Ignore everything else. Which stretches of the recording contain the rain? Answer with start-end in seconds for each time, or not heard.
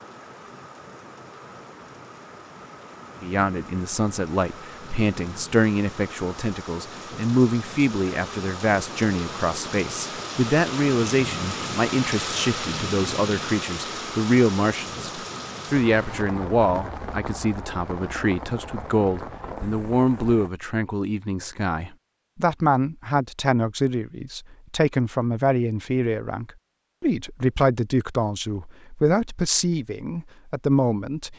0.0-20.5.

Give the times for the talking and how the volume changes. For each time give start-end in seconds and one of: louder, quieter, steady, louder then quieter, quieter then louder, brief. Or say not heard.
3.2-31.3 steady.